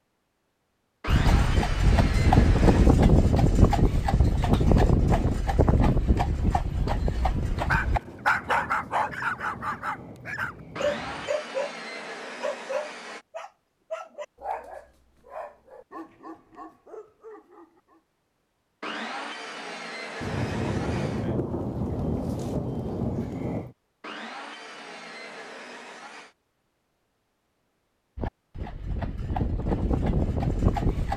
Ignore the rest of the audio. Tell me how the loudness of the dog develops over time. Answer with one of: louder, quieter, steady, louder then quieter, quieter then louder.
quieter.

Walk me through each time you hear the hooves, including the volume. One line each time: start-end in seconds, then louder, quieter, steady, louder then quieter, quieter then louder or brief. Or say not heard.
1.1-8.0 quieter
28.1-31.1 brief.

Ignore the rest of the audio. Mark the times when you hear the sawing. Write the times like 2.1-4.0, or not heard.
1.0-2.9, 10.8-13.2, 18.8-21.3, 24.0-26.4.